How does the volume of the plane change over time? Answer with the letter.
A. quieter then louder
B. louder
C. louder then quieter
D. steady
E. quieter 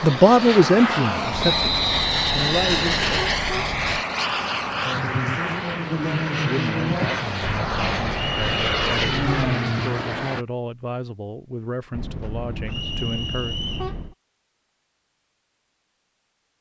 D.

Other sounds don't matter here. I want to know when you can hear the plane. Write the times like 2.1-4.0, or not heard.
0.0-10.4.